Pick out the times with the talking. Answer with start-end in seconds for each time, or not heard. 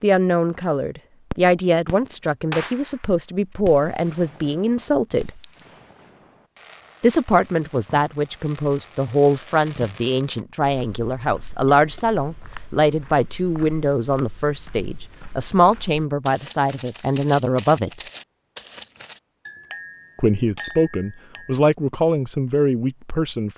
0.0-5.3, 7.0-18.0, 20.1-23.5.